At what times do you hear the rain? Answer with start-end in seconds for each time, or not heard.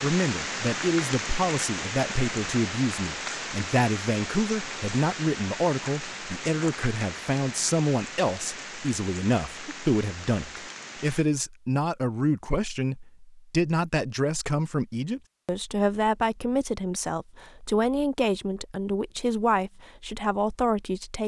0.0-11.2.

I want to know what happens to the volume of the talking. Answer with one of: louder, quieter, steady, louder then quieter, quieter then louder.
steady.